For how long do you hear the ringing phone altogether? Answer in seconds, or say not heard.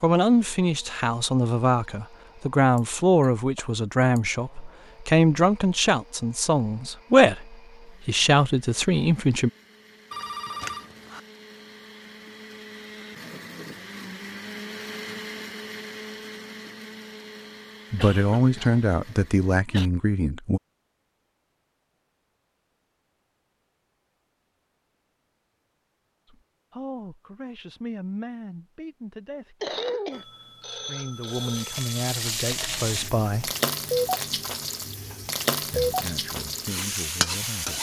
3 s.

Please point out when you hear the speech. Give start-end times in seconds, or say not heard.
0.0-9.5, 17.9-20.6, 26.2-33.5, 35.6-37.7.